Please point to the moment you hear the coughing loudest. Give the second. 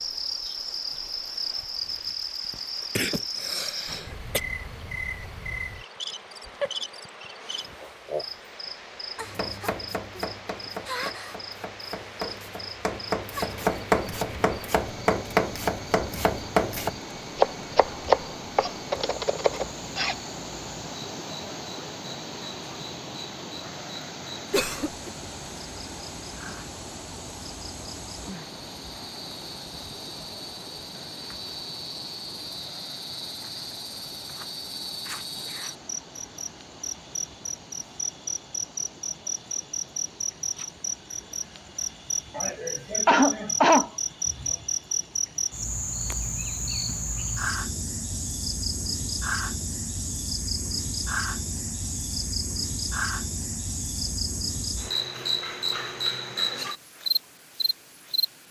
44 s.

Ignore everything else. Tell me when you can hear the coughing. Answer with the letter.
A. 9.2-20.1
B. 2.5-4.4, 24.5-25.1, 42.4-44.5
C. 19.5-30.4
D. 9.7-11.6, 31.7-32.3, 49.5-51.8
B.